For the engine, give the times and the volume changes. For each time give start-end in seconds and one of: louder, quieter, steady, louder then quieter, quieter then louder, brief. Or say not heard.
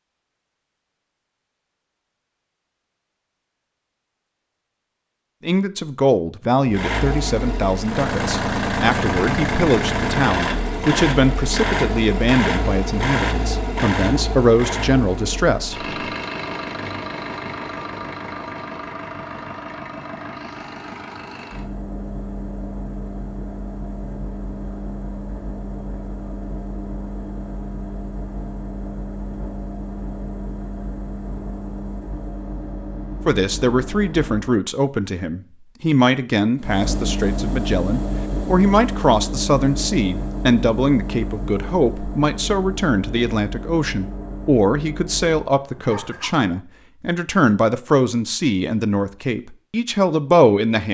6.7-34.6 quieter
36.6-46.5 quieter.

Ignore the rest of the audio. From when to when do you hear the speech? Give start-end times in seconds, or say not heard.
5.4-15.9, 33.2-50.8.